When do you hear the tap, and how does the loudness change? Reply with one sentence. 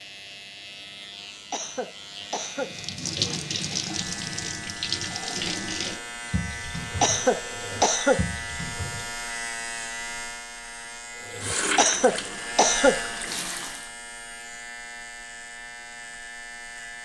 The tap can be heard from 2.6 to 9.3 s, getting quieter; and briefly from 11.2 to 13.9 s.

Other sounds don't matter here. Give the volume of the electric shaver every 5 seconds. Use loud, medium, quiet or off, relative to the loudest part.
medium, loud, loud, medium.